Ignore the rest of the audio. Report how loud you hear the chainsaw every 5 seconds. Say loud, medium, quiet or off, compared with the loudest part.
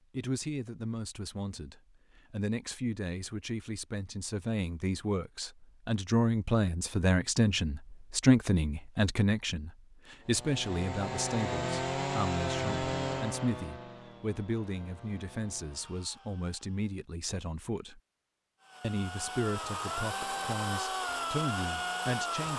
off, off, loud, medium, loud.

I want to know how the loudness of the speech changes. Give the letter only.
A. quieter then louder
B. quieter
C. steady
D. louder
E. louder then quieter
E.